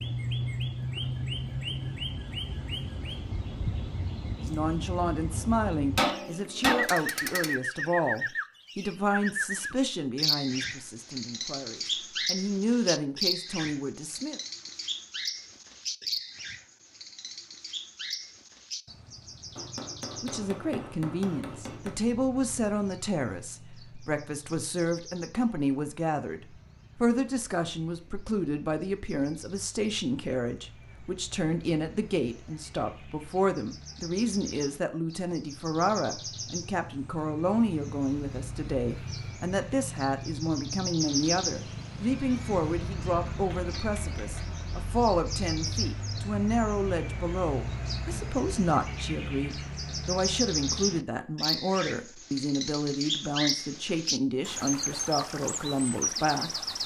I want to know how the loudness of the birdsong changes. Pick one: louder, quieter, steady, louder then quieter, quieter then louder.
quieter then louder.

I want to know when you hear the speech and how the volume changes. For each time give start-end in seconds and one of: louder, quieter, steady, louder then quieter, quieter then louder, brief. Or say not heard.
4.3-14.4 quieter then louder
20.2-56.6 steady.